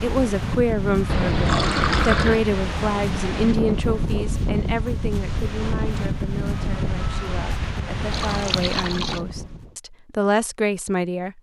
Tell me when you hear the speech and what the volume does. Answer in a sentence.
You can hear the speech from 0.0 to 11.3 s, getting quieter then louder.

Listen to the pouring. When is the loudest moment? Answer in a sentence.
The loudest moment of the pouring is at 2 seconds.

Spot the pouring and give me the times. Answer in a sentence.
The pouring can be heard from 1.1 to 2.5 s and from 8.1 to 9.2 s.